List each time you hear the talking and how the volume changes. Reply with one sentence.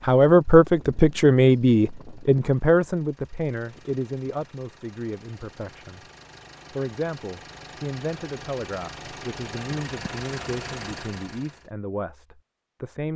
You can hear the talking from 0.0 to 6.0 s, getting quieter; and from 6.7 to 13.1 s, at a steady volume.